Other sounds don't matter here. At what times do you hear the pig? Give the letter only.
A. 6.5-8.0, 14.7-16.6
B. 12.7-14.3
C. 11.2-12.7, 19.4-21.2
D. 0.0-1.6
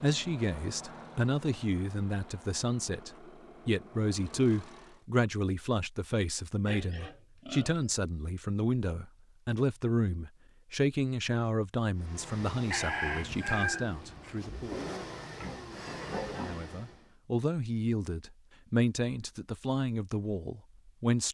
A.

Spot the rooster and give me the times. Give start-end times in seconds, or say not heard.
12.7-14.3.